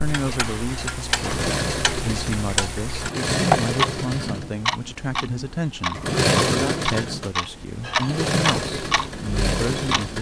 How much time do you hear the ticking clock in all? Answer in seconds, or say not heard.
10 s.